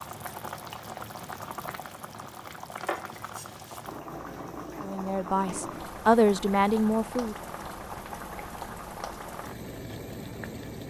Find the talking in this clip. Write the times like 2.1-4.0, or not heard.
4.8-7.3.